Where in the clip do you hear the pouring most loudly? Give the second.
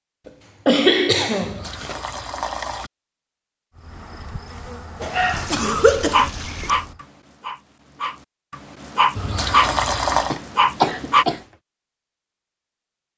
10 s.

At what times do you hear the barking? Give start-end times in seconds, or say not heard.
5.0-11.2.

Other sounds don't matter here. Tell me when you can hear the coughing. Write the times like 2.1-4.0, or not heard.
0.2-1.9, 5.0-6.3, 10.3-11.4.